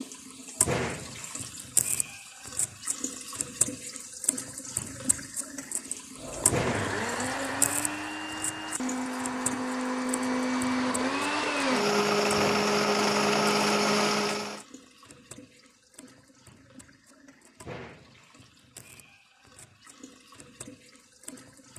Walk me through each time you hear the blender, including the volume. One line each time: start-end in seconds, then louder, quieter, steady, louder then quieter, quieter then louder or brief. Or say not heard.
6.2-14.6 louder.